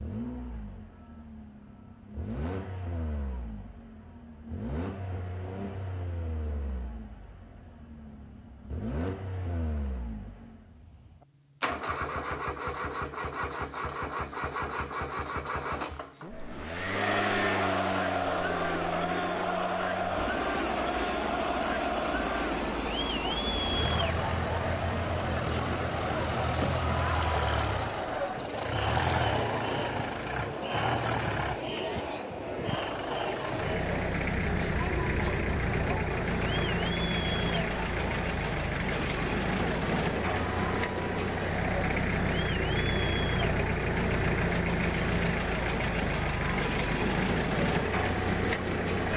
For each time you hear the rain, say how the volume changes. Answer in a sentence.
The rain can't be heard in this clip.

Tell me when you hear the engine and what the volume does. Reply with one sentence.
You can hear the engine from 0.0 to 49.1 s, getting louder.